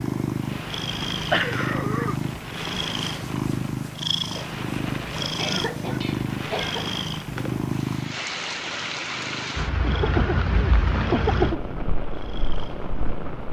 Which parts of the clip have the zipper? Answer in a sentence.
You can't hear the zipper here.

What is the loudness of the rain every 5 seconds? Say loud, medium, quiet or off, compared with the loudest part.
medium, loud, loud.